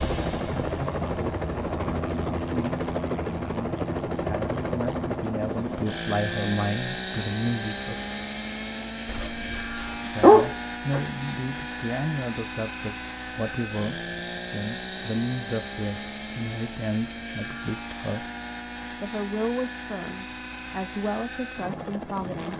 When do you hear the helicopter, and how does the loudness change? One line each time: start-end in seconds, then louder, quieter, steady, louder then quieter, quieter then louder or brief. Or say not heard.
0.0-22.5 quieter.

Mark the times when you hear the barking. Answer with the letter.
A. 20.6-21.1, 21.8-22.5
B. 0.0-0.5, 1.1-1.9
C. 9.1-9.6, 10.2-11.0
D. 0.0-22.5
C.